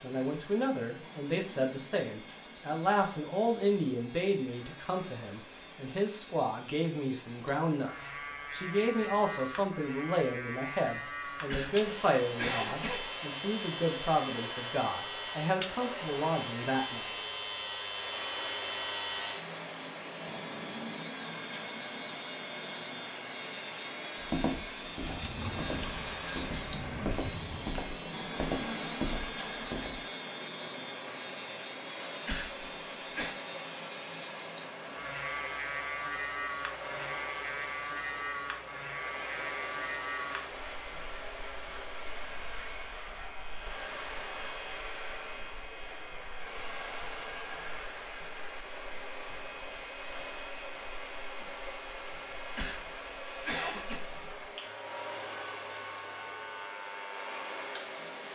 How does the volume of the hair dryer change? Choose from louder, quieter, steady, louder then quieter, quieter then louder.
louder.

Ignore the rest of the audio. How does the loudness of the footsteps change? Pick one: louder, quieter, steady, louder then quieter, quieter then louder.
louder.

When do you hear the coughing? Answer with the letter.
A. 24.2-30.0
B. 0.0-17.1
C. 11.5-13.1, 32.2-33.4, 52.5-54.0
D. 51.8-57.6
C.